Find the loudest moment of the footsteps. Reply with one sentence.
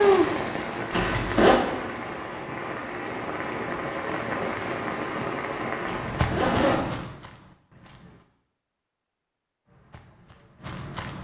The volume of the footsteps peaks at 6 seconds.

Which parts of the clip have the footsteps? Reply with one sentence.
The footsteps can be heard from 6.0 to 8.2 s and from 9.7 to 11.1 s.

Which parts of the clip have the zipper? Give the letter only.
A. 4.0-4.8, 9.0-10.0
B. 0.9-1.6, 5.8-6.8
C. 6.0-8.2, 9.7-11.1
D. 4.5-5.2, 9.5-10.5
B.